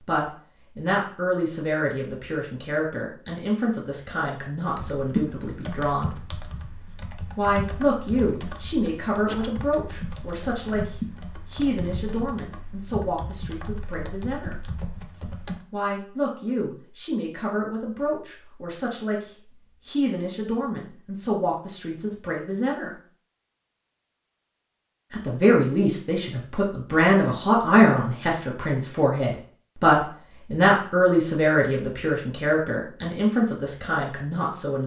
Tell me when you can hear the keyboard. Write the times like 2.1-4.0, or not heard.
4.7-15.6.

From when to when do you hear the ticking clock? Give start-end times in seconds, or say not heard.
not heard.